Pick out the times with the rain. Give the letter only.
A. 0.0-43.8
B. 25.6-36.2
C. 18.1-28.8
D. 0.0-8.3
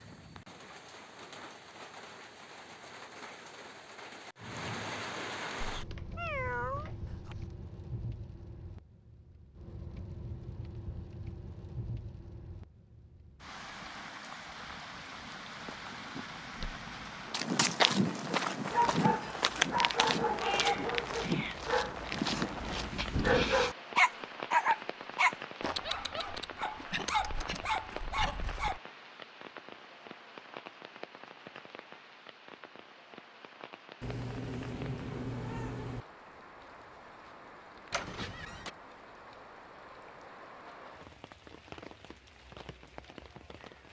A.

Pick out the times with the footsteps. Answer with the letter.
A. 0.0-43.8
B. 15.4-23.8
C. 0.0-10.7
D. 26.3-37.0
B.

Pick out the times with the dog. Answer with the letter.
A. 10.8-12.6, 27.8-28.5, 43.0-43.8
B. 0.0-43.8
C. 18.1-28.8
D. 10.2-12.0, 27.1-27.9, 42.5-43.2
C.